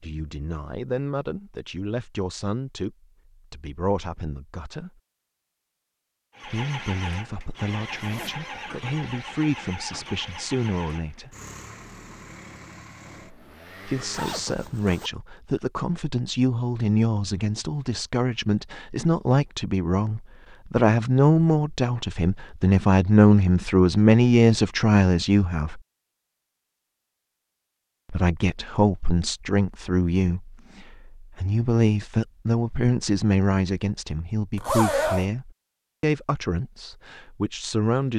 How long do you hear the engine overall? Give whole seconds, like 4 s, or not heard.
8 s.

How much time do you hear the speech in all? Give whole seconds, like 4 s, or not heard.
32 s.